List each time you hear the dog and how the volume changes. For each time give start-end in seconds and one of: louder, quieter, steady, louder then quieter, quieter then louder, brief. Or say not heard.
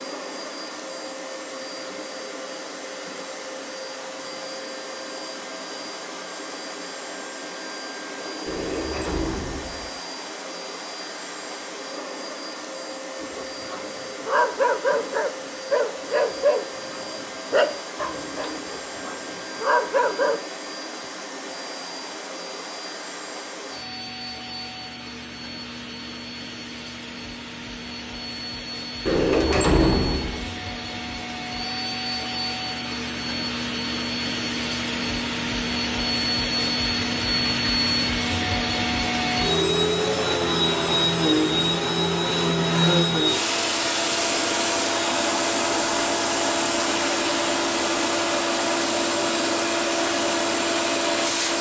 13.2-20.4 steady.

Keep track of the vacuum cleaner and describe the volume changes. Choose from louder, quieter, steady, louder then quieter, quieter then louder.
louder.